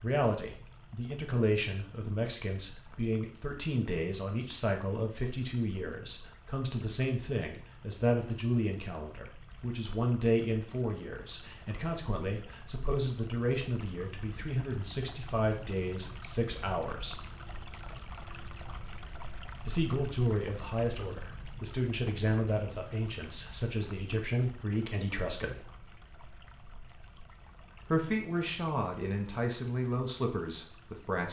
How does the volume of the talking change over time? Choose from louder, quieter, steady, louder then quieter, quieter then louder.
steady.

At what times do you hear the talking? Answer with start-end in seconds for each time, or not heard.
0.0-17.3, 19.6-25.7, 27.9-31.2.